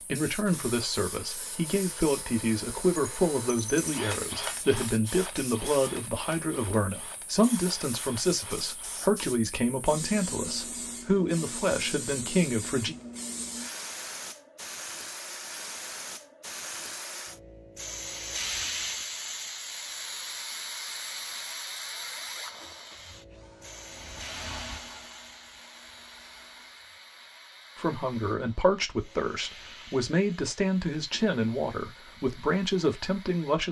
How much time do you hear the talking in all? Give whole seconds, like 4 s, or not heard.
19 s.